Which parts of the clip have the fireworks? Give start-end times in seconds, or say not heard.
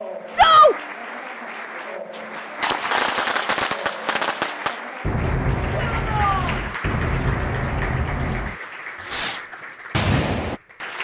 2.1-10.6.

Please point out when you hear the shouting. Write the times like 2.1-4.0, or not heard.
0.3-0.8, 5.7-6.6.